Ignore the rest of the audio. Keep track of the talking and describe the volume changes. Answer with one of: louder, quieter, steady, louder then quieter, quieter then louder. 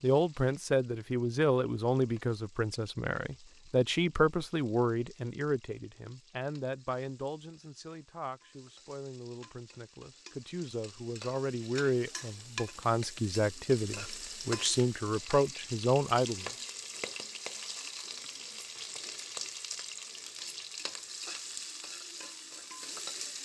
quieter then louder.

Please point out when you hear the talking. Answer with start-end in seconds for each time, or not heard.
0.0-16.5.